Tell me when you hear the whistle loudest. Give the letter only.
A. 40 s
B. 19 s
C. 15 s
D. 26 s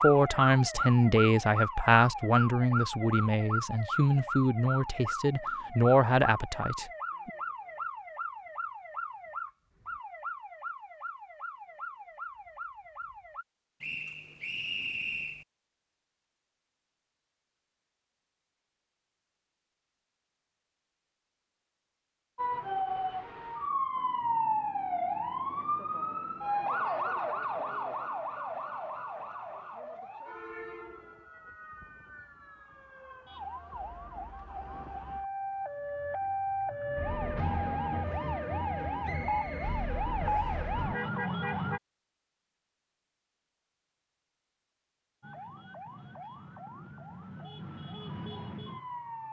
C.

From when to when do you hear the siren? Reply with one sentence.
You can hear the siren from 0.0 to 13.4 s, from 22.4 to 41.8 s and from 45.2 to 49.2 s.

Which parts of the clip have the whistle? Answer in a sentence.
The whistle can be heard from 13.8 to 15.4 s and from 39.0 to 40.6 s.